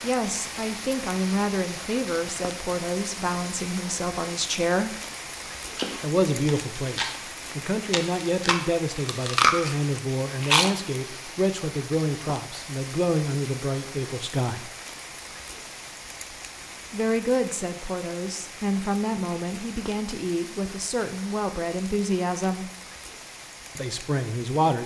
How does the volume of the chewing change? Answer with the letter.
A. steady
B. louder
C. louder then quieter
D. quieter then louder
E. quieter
B.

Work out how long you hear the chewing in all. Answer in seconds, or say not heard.
5 s.